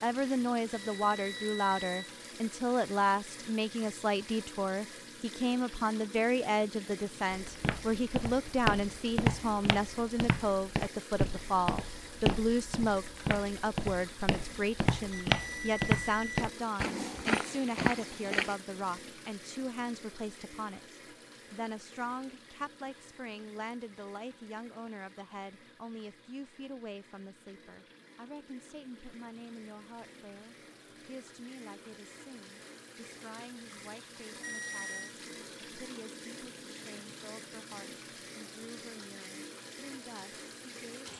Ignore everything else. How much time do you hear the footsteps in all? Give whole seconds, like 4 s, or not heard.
11 s.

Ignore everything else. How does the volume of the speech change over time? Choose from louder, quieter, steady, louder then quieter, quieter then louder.
quieter.